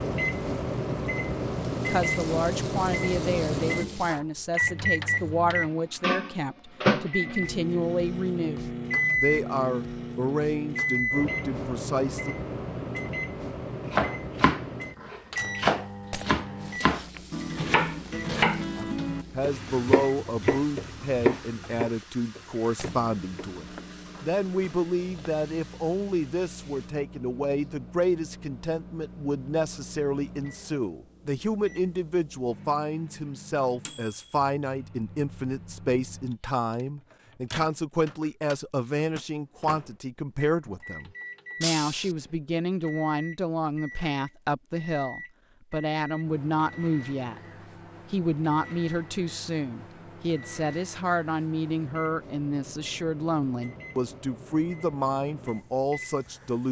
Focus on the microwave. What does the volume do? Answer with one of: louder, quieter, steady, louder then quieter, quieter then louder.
quieter.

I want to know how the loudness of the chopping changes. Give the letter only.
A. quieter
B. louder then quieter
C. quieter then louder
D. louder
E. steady
A.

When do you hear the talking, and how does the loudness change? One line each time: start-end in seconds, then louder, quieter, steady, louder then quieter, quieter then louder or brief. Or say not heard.
1.9-12.3 steady
18.8-47.4 steady
48.1-56.6 steady.